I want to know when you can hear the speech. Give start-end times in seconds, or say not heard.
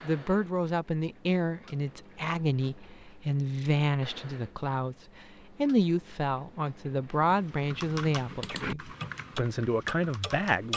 0.0-10.7.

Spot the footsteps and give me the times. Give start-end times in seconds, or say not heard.
not heard.